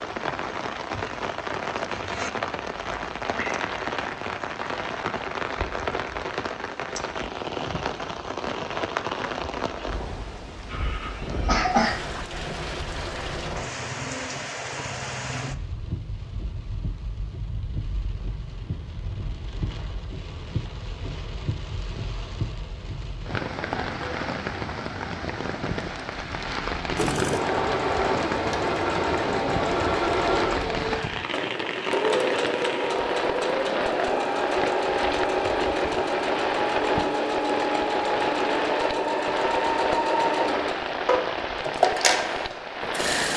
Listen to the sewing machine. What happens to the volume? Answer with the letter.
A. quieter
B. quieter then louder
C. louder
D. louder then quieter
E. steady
E.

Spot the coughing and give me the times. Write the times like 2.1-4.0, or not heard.
10.7-12.0.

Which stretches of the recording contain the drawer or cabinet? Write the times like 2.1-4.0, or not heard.
not heard.